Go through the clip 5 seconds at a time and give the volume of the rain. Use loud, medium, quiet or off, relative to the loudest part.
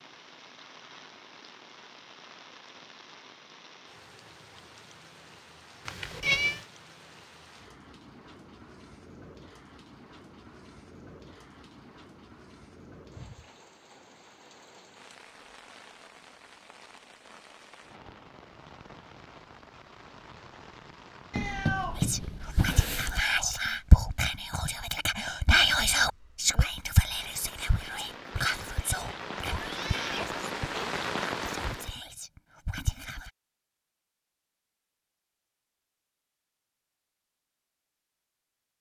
quiet, quiet, quiet, quiet, quiet, medium, loud, off.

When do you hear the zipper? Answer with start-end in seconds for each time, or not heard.
not heard.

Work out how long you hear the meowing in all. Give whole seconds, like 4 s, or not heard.
4 s.